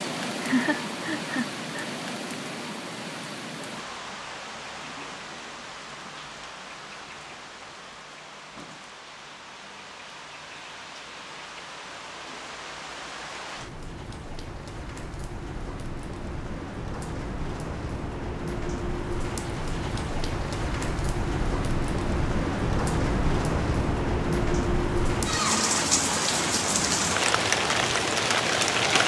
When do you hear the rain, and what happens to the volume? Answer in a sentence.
You can hear the rain from 0.0 to 29.0 s, getting quieter then louder.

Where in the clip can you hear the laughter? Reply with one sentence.
The laughter can be heard from 0.4 to 1.9 s.